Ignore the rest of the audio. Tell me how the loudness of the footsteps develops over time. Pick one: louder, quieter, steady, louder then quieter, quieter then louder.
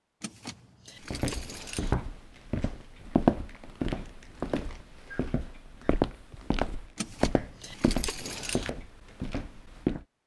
louder then quieter.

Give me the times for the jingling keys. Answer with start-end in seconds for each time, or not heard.
0.2-1.9, 7.0-8.7.